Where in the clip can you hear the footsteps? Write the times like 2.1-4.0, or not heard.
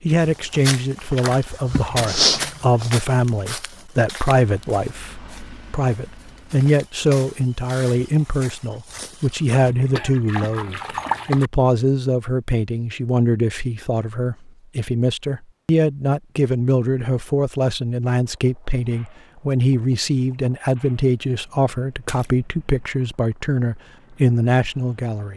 0.2-9.7.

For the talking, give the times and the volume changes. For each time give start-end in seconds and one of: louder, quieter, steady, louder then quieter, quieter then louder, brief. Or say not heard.
0.0-25.3 steady.